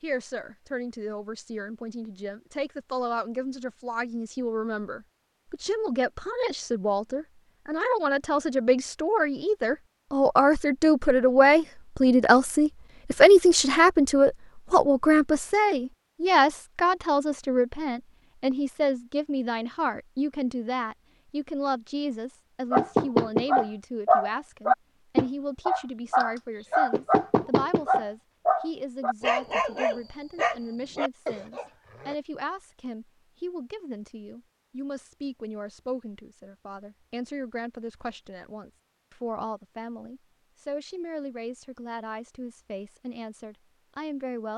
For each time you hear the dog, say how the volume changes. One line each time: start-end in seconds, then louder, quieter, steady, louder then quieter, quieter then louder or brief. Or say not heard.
22.7-32.1 quieter.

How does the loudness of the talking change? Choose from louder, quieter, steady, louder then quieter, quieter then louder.
louder then quieter.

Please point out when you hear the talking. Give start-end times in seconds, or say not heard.
0.0-44.5.